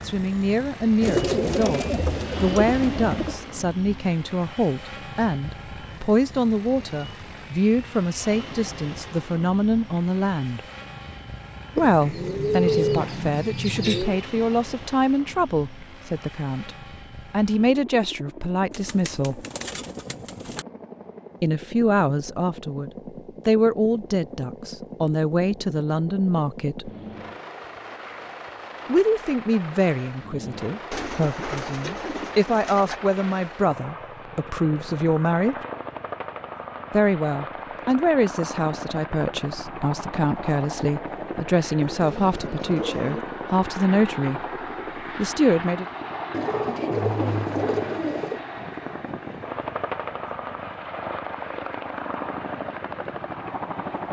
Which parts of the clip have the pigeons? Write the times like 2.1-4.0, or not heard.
1.0-3.5, 11.8-14.2, 18.7-20.6, 30.9-33.0, 41.8-43.2, 46.3-48.5.